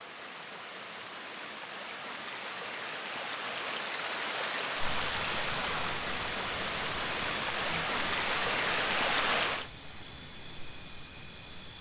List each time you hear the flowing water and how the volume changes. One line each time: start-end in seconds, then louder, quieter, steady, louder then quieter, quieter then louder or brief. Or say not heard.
0.0-9.7 louder.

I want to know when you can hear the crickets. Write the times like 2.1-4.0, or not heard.
4.8-11.7.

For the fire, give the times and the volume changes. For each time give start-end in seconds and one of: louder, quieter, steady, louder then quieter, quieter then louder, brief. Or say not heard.
not heard.